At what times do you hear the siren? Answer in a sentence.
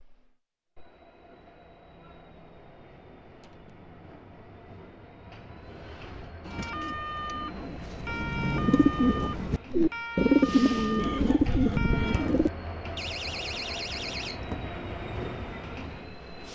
You can hear the siren from 6.5 to 12.4 s.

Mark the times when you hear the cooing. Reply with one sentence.
The cooing can be heard from 6.4 to 12.5 s.